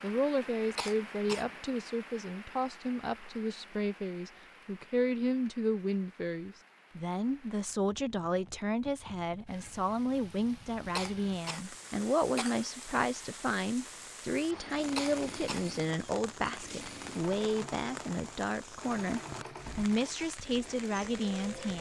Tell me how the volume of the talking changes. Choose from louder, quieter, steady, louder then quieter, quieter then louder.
steady.